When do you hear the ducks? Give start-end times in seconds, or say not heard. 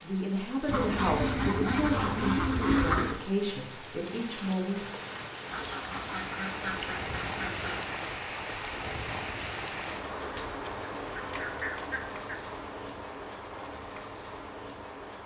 0.7-3.1, 5.5-8.0, 11.2-12.2.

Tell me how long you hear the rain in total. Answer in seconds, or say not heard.
15 s.